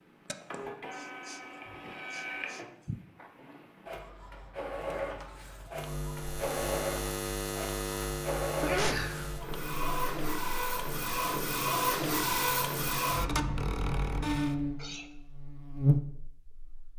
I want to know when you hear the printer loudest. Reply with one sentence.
The loudest moment of the printer is at 12 seconds.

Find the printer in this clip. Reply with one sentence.
The printer can be heard from 0.0 to 14.6 s.